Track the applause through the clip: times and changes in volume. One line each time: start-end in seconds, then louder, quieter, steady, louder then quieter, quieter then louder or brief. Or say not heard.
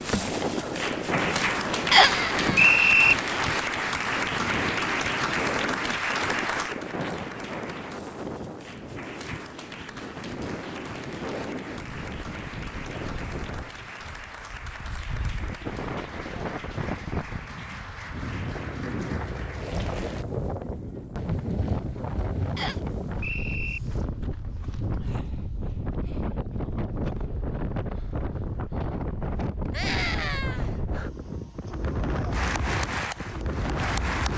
0.0-20.2 quieter
32.3-34.3 brief.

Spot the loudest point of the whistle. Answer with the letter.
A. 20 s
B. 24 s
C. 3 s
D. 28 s
C.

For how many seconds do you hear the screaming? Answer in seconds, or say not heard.
2 s.